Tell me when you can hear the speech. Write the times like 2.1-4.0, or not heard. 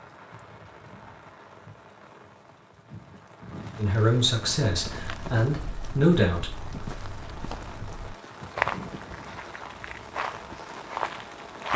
3.8-6.5.